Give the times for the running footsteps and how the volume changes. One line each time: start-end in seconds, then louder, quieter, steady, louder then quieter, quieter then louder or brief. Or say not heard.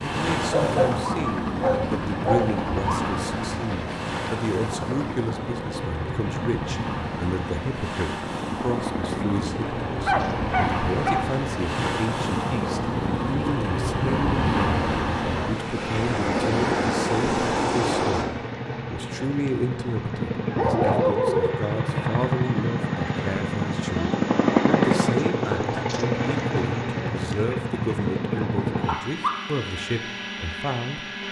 not heard.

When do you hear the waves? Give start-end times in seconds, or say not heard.
0.0-18.2.